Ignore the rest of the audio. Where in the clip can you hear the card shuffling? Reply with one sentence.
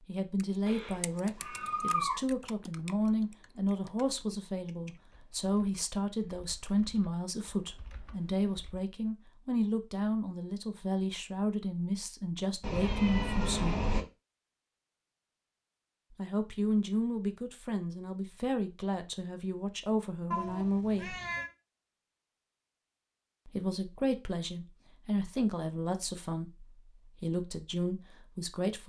The card shuffling can't be heard in this clip.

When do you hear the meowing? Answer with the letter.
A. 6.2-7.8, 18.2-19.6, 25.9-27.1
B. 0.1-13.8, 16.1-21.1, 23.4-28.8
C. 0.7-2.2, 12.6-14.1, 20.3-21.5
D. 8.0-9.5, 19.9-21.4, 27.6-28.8
C.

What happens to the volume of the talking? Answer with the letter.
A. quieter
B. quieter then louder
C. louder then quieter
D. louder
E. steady
E.